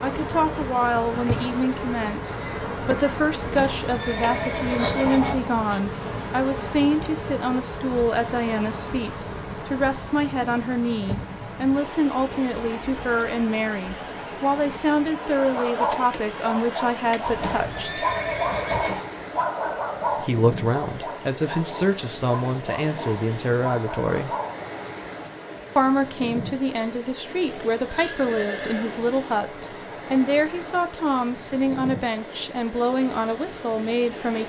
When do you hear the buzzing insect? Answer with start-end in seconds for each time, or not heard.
0.0-17.2.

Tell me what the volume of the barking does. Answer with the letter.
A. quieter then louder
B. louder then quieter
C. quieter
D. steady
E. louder
C.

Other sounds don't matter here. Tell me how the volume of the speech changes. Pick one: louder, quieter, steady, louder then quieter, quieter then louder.
steady.